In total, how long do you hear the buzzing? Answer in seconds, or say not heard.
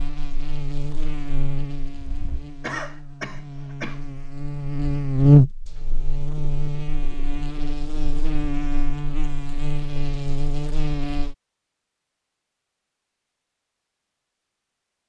11 s.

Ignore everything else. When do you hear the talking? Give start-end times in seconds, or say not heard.
not heard.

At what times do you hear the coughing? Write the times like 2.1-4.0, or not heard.
2.6-4.0.